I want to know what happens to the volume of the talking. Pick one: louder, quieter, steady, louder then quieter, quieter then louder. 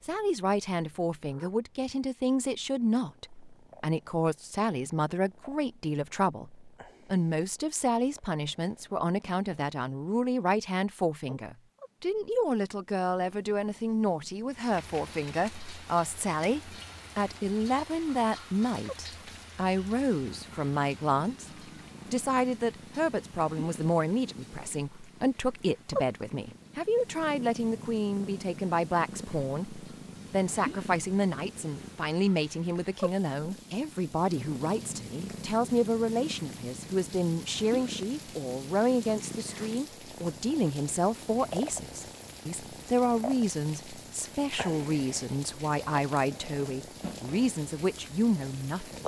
steady.